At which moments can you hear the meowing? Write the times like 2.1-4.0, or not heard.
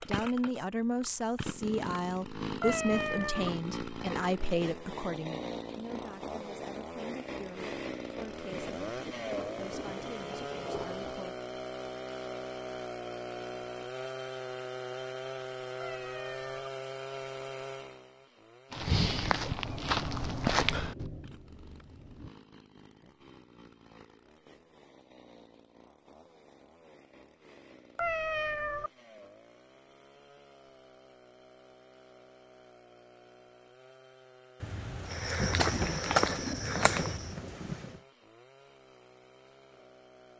2.6-3.5, 15.8-16.7, 27.9-28.9.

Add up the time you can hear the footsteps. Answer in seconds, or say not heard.
5 s.